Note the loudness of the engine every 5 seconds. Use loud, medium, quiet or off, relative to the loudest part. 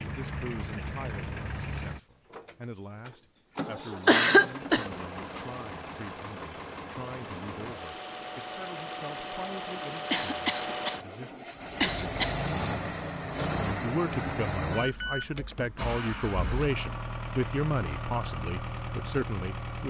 medium, medium, loud, loud.